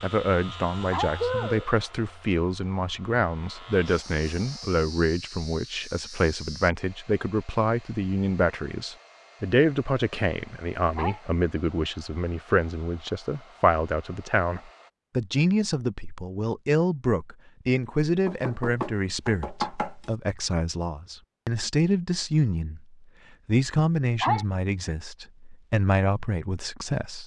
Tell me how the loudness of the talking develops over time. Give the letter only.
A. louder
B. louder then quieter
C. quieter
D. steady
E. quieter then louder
D.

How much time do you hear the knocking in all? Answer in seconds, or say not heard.
2 s.